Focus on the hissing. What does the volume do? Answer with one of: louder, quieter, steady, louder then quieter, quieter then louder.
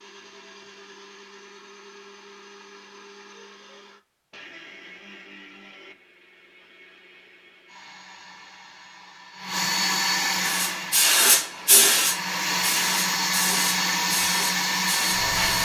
quieter.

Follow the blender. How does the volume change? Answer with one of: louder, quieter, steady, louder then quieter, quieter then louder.
louder.